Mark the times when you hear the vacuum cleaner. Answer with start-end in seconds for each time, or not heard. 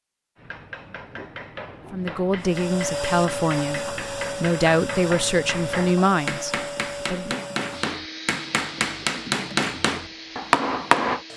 2.4-11.3.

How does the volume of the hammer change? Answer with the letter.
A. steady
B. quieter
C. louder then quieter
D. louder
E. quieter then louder
D.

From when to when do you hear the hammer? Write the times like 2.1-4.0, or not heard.
0.3-11.2.